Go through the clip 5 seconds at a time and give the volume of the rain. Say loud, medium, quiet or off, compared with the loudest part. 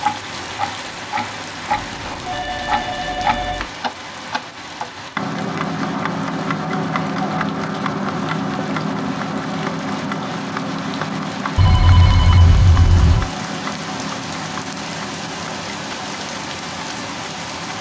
loud, medium, loud, loud.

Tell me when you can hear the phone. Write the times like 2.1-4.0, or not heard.
1.7-3.6, 11.6-13.3.